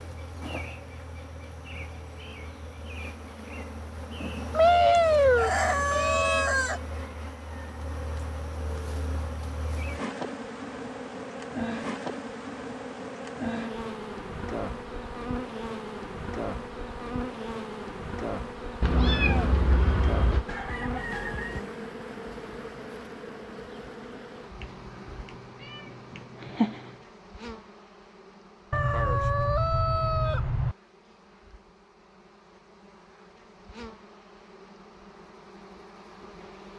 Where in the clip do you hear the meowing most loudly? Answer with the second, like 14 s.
5 s.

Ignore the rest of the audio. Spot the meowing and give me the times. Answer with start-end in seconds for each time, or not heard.
4.5-6.5, 18.8-20.4, 25.2-26.9.